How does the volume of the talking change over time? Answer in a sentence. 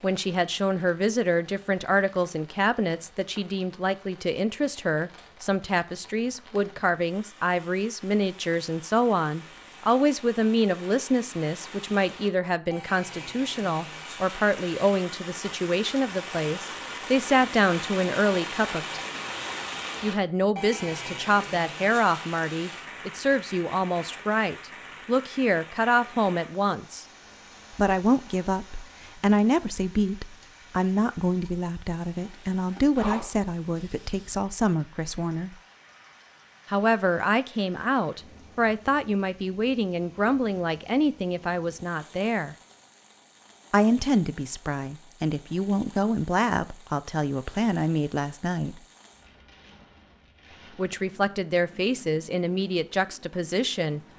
The volume of the talking stays about the same.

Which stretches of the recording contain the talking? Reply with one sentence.
The talking can be heard from 0.0 to 19.0 s, from 20.0 to 27.1 s, from 27.8 to 35.5 s, from 36.6 to 42.5 s, from 43.7 to 48.8 s and from 50.8 to 54.0 s.